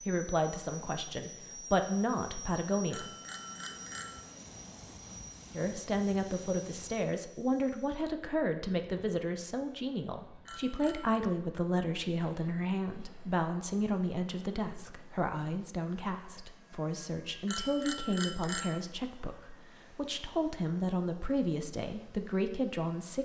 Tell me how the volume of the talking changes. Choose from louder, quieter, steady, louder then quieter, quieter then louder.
steady.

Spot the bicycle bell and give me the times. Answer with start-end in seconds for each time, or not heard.
2.9-4.2, 10.4-11.2, 17.4-18.8.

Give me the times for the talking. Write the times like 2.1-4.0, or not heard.
0.0-3.1, 5.5-23.2.